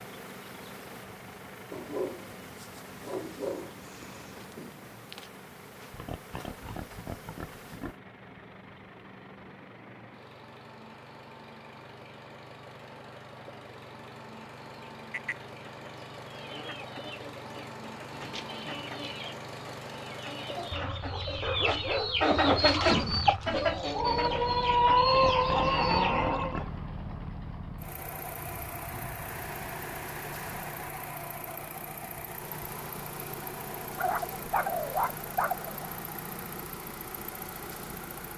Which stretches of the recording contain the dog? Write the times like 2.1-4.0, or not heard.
1.7-4.5, 21.4-23.1, 34.0-35.9.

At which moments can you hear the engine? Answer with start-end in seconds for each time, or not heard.
0.0-38.3.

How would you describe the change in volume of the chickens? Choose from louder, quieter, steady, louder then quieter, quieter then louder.
louder.